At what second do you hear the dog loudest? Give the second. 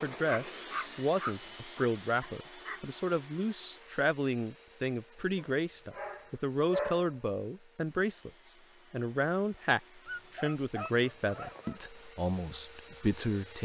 7 s.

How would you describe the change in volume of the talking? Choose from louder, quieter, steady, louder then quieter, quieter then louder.
steady.